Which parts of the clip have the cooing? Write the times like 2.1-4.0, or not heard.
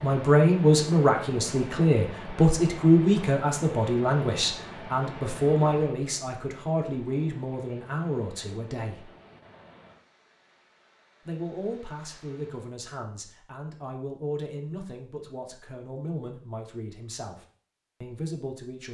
not heard.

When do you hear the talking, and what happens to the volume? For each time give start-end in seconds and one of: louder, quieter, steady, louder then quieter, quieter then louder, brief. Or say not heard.
0.0-9.1 quieter
11.2-18.8 steady.